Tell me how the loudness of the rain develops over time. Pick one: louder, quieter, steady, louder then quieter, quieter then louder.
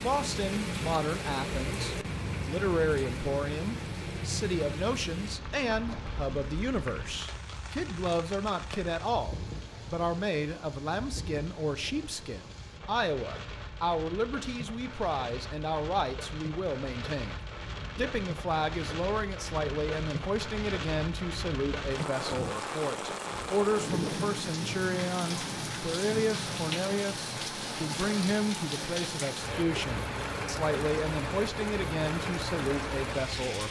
quieter then louder.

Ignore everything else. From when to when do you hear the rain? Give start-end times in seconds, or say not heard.
0.0-33.6.